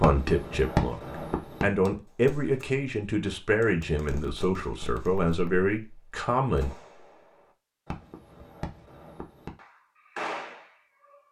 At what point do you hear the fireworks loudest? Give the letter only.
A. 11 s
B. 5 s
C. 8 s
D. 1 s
D.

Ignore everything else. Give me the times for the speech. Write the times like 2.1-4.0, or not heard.
0.0-6.7.